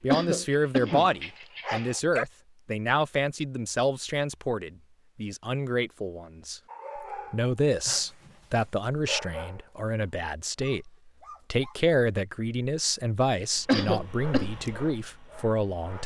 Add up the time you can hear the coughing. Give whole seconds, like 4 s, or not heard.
2 s.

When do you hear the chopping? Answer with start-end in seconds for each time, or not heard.
not heard.